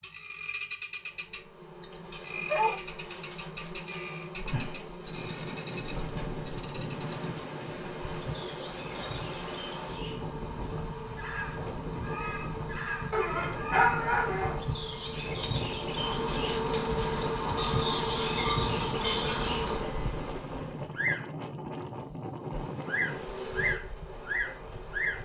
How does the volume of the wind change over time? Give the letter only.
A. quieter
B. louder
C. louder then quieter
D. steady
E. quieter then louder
D.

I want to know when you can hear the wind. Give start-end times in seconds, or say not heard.
5.0-25.2.